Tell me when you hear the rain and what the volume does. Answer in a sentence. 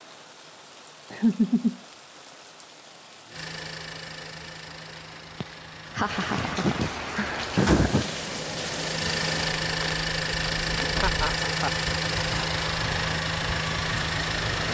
You can hear the rain from 0.0 to 14.6 s, getting louder.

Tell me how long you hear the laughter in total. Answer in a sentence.
You can hear the laughter for 4 seconds altogether.